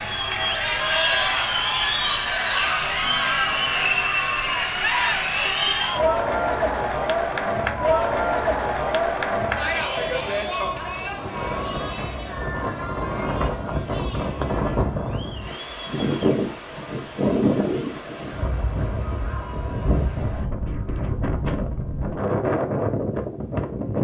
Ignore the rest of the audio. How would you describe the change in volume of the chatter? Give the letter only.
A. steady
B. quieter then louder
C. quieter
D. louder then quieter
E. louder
C.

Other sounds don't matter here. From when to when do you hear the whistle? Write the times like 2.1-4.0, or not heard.
not heard.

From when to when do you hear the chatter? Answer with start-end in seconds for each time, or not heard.
0.0-20.4.